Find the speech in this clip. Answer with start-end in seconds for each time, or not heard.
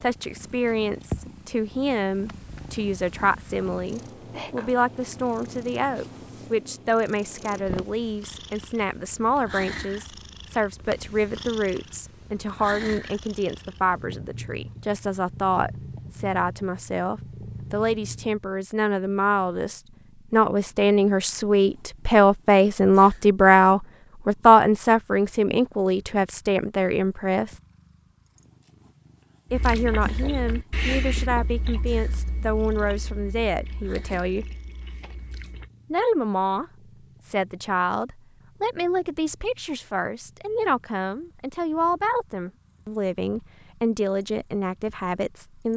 0.0-27.6, 29.5-34.5, 35.9-36.6, 37.2-45.7.